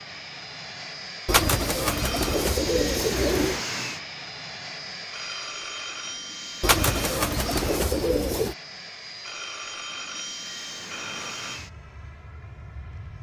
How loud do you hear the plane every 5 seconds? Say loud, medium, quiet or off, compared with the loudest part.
loud, medium, medium.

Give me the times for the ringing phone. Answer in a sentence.
The ringing phone can be heard from 1.9 to 2.5 s, from 5.1 to 7.2 s and from 9.2 to 11.6 s.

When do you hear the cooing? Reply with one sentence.
The cooing can be heard from 1.2 to 3.6 s and from 6.6 to 8.6 s.